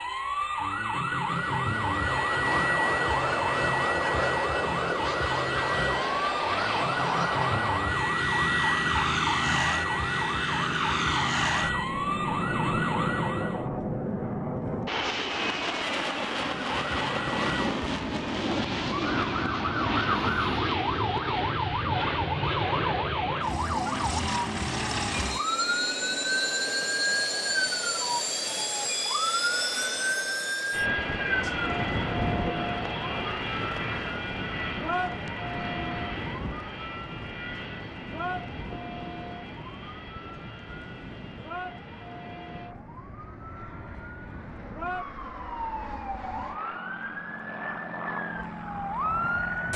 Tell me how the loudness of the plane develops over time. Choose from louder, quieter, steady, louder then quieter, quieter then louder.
quieter.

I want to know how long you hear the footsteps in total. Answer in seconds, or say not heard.
not heard.